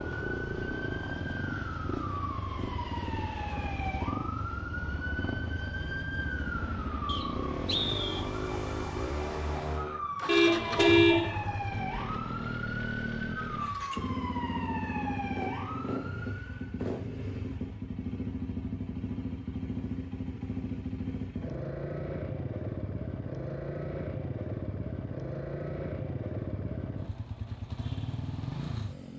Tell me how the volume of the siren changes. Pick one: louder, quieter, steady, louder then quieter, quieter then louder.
steady.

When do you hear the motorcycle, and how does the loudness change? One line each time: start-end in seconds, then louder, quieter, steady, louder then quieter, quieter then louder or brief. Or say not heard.
0.0-29.1 steady.